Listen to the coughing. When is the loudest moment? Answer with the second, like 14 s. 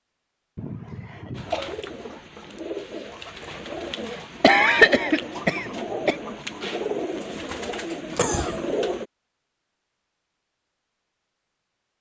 5 s.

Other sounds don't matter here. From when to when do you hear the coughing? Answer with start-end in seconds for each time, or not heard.
0.6-1.8, 4.4-6.2, 8.2-8.7.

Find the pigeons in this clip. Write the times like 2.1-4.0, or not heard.
1.3-9.1.